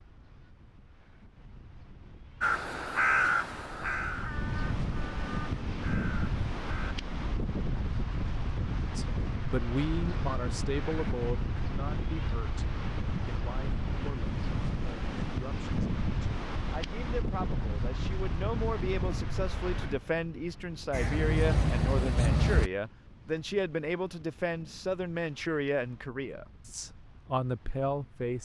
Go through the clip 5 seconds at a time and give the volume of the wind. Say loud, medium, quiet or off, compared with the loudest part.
medium, loud, loud, loud, quiet, quiet.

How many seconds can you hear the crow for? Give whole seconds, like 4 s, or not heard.
6 s.